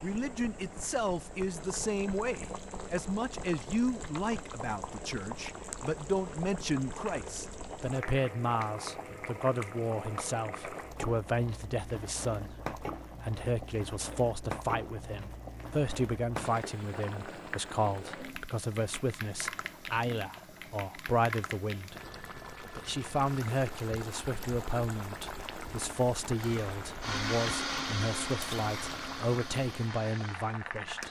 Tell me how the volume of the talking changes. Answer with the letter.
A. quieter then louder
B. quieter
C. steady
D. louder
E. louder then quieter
C.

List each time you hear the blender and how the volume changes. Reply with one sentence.
You can hear the blender from 26.4 to 31.0 s, getting quieter.